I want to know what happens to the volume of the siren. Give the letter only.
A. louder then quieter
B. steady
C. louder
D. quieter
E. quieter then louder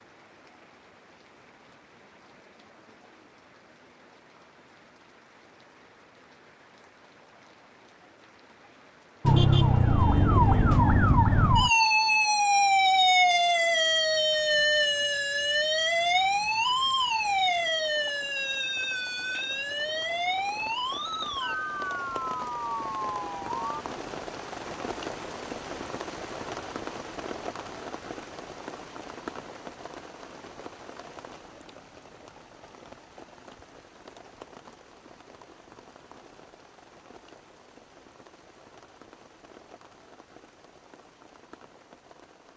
D.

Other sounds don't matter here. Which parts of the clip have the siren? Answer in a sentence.
You can hear the siren from 9.2 to 23.9 s.